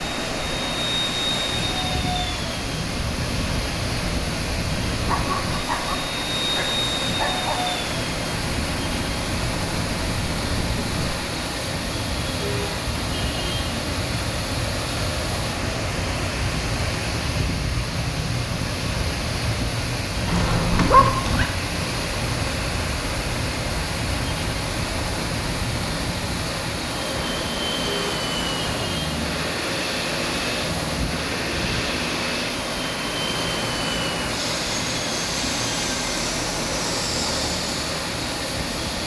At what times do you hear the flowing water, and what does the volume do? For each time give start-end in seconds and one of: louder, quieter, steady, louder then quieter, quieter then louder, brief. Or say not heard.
0.0-39.0 steady.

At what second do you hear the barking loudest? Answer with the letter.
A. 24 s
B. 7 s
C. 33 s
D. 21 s
D.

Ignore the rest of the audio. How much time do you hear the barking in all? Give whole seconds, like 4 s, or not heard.
4 s.